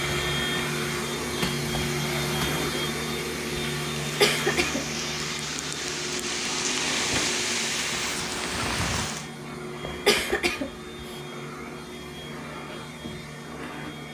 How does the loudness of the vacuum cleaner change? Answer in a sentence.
The volume of the vacuum cleaner goes down.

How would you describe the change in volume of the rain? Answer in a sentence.
The loudness of the rain goes up.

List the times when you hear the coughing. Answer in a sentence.
The coughing can be heard from 4.2 to 4.8 s and from 10.1 to 11.1 s.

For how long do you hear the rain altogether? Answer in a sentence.
You can hear the rain for 9 seconds altogether.